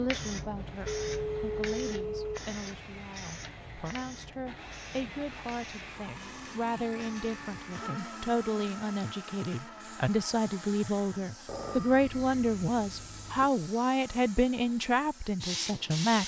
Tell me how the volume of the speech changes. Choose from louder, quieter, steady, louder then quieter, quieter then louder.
louder.